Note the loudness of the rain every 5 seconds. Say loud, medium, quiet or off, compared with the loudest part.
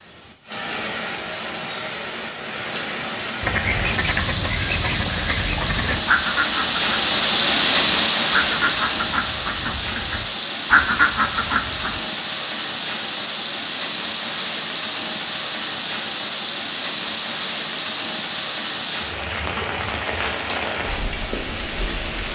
medium, loud, medium, medium, medium.